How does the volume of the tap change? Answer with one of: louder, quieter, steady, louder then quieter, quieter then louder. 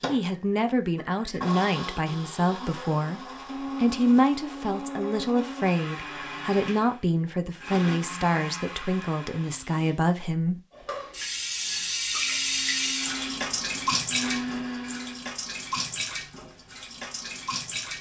quieter.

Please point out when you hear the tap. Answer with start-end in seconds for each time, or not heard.
10.7-17.9.